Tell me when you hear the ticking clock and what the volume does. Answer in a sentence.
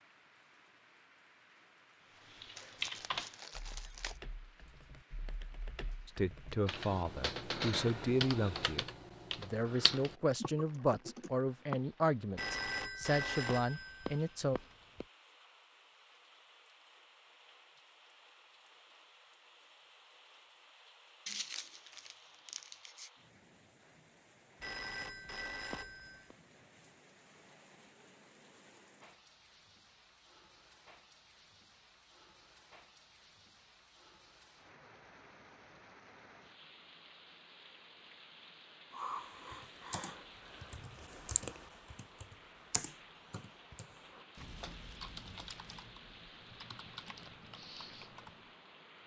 The ticking clock can't be heard in this clip.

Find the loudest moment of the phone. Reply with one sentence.
The loudest moment of the phone is at 13 seconds.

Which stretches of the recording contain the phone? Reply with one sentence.
The phone can be heard from 12.3 to 15.1 s and from 24.6 to 26.4 s.